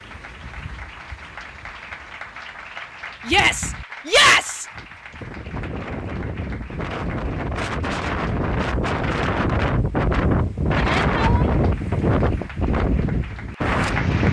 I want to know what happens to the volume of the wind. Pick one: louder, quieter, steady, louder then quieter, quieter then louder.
louder.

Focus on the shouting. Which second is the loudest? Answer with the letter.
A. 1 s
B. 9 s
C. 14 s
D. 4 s
D.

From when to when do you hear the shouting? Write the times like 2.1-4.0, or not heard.
3.2-4.7, 10.9-11.5.